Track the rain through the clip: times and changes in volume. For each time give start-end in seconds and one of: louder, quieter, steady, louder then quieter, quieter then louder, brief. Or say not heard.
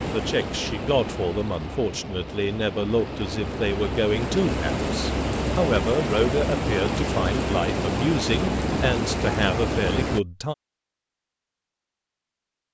0.0-10.2 louder.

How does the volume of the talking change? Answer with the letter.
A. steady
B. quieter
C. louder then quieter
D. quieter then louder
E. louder
A.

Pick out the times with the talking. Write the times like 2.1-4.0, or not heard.
0.1-10.6.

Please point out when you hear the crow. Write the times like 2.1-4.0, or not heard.
not heard.